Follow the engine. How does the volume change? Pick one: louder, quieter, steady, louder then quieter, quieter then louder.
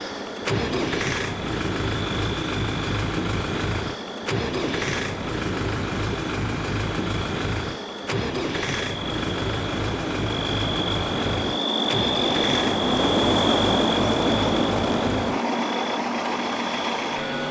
steady.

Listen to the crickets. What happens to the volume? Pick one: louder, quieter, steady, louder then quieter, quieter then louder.
louder.